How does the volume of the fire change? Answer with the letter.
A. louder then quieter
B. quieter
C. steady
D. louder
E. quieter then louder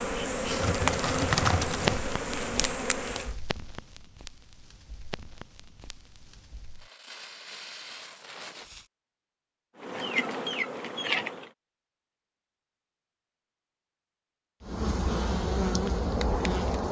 E.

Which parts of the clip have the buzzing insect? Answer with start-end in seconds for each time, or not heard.
0.0-3.4, 9.8-11.5, 14.6-16.8.